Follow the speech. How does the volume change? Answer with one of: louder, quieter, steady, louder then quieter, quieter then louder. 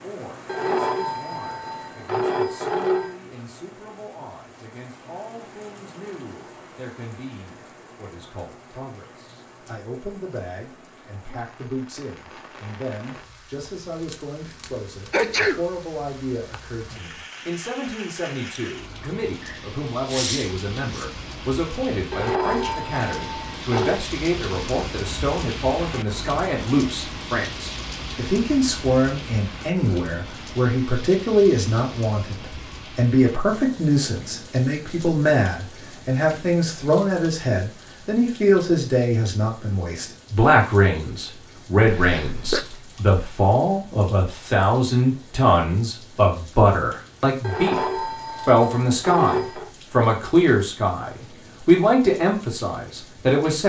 louder.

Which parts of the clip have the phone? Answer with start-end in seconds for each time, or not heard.
0.5-3.1, 22.1-24.0, 47.4-49.7.